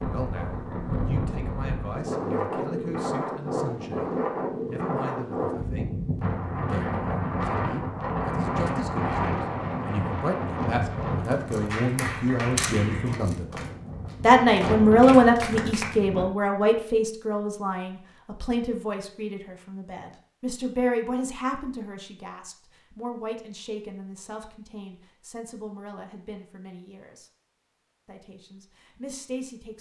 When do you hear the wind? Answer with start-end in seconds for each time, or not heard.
0.0-16.2.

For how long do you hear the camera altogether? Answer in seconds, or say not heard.
2 s.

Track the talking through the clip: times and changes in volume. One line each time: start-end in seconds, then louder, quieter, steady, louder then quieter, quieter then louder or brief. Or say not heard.
0.0-6.0 steady
6.7-13.6 louder
14.2-27.3 quieter
28.1-29.7 brief.